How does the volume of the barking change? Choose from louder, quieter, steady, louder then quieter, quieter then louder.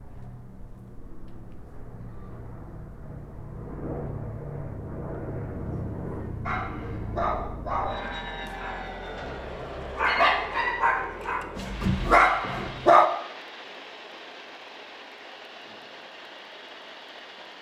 quieter then louder.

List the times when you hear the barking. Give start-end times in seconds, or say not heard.
6.5-13.1.